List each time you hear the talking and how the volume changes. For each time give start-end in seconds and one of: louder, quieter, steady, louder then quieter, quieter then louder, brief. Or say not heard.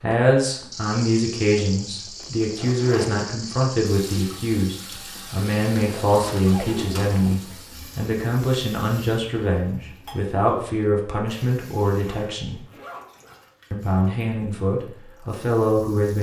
0.0-12.6 steady
13.7-16.1 brief.